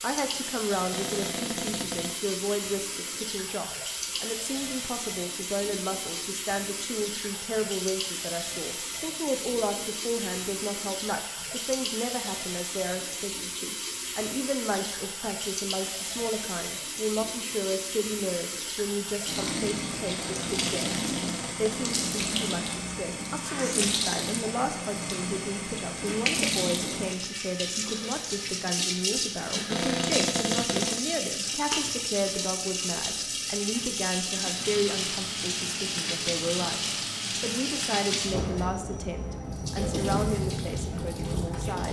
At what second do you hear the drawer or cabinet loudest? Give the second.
30 s.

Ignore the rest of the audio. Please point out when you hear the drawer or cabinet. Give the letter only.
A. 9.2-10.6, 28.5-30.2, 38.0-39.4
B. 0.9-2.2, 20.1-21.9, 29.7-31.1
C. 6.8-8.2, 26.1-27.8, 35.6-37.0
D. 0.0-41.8
B.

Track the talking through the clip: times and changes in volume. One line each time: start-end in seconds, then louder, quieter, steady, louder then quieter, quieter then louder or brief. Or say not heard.
0.0-41.8 steady.